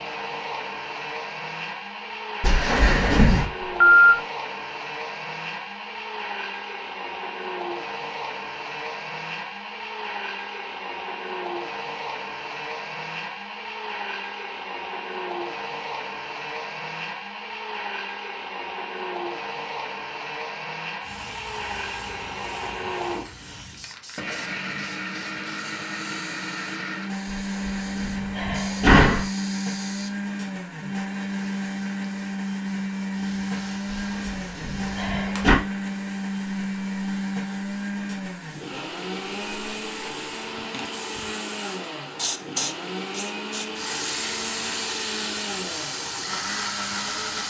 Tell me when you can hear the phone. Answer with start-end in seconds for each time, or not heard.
3.6-4.1.